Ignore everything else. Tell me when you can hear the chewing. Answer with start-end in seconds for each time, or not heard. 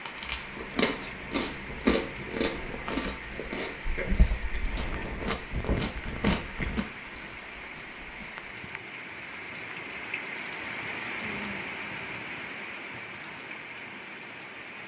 0.0-8.4.